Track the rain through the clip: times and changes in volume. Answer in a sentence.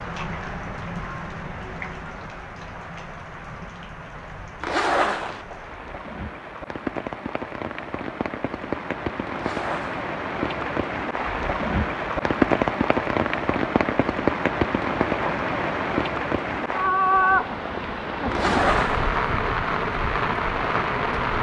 The rain can be heard from 0.0 to 21.3 s, getting louder.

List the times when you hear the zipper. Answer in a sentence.
The zipper can be heard from 4.6 to 5.5 s, from 9.3 to 10.1 s and from 18.3 to 19.1 s.